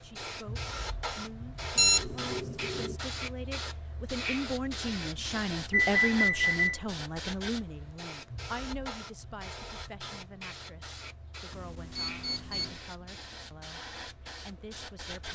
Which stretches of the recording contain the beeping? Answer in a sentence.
You can hear the beeping from 1.8 to 3.0 s, from 5.7 to 6.8 s and from 11.5 to 12.8 s.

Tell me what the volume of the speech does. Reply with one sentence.
The volume of the speech goes up, then down.